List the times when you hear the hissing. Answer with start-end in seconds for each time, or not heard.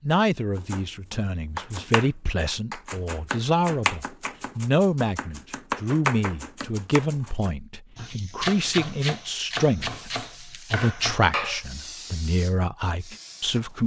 9.8-13.8.